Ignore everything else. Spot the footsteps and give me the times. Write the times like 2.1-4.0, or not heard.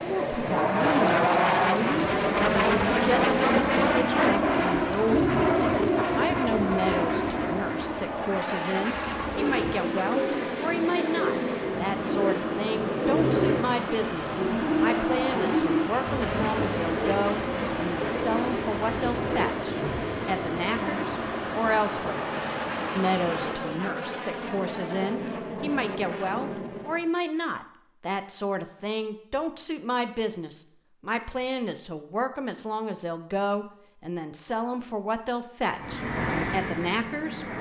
not heard.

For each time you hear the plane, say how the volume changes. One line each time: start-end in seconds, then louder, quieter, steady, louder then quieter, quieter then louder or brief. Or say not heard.
0.0-27.1 quieter
35.8-37.5 brief.